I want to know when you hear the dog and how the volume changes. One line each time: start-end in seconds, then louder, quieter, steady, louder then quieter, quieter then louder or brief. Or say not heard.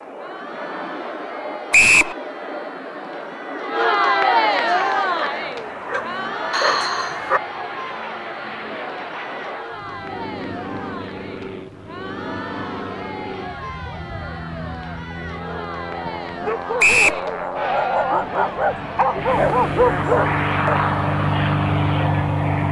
4.7-7.4 brief
16.1-20.8 louder.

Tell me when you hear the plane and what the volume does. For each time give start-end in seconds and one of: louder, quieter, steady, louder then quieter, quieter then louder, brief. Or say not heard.
0.0-22.6 louder.